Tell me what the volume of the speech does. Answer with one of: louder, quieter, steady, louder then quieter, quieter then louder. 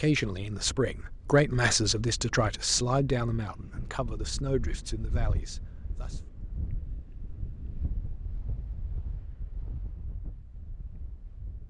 quieter.